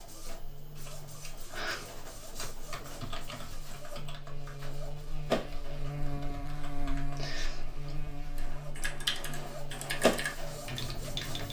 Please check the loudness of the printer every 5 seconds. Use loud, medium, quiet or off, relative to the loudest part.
quiet, medium, loud.